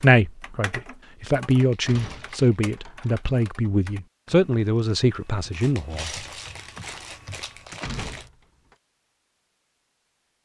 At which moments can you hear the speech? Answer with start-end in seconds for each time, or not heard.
0.0-6.1.